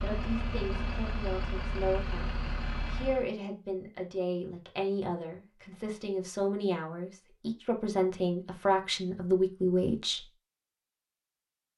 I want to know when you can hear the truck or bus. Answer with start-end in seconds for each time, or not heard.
0.0-3.3.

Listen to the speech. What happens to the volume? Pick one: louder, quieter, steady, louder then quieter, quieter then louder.
louder.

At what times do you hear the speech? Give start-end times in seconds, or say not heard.
0.0-10.2.